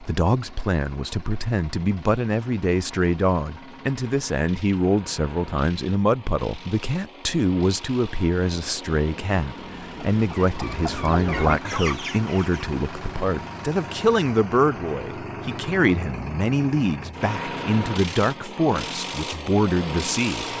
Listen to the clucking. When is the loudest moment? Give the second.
11 s.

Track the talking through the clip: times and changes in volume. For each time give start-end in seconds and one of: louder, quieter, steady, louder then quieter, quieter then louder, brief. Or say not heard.
0.0-20.4 steady.